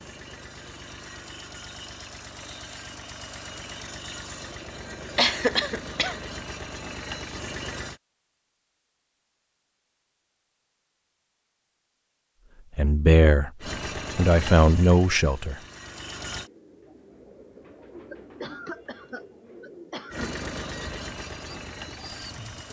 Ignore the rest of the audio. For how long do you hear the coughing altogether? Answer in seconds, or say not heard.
3 s.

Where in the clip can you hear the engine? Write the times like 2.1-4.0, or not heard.
0.0-8.0, 13.6-16.5, 20.1-22.6.